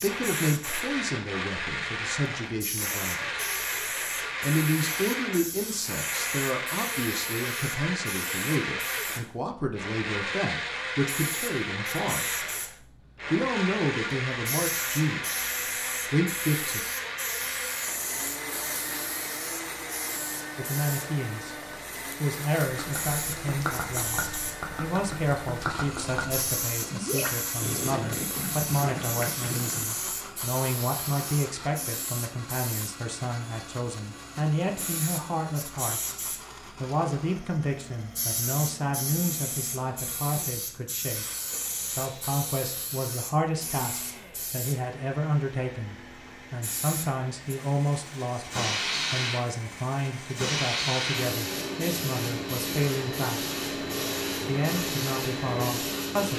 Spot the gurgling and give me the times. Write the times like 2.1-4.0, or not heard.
22.8-29.9.